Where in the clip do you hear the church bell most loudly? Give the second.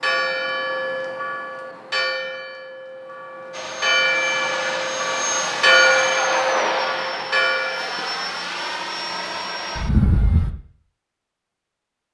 6 s.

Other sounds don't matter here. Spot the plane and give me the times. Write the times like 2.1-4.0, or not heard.
3.5-10.6.